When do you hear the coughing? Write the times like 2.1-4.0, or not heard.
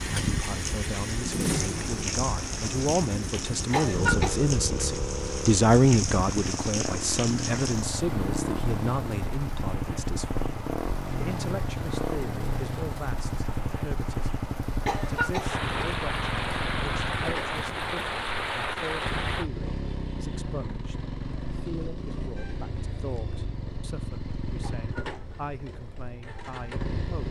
3.7-4.5, 14.8-15.9, 24.6-25.4.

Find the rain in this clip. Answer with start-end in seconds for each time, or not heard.
0.0-19.5.